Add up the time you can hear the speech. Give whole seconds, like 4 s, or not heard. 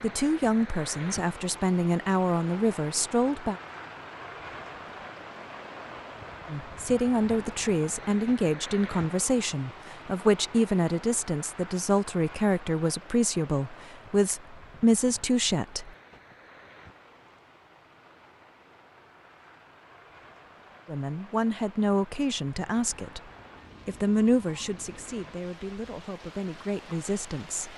19 s.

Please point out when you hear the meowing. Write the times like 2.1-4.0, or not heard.
not heard.